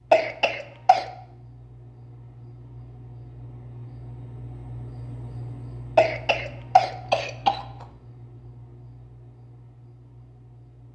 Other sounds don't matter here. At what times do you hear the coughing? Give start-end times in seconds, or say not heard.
0.1-1.1, 6.0-7.7.